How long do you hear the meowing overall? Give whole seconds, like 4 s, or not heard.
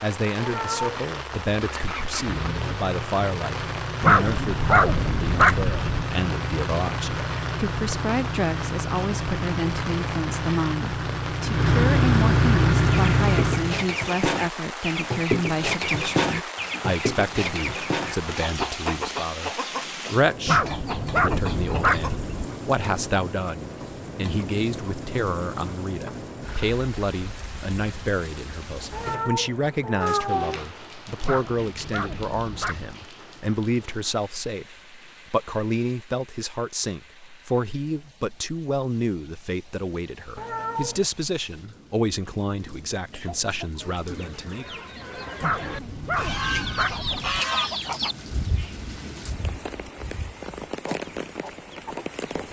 3 s.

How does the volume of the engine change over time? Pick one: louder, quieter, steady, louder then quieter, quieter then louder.
louder.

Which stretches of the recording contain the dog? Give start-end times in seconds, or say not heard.
4.0-6.0, 20.4-22.4, 31.2-33.0, 45.4-47.4.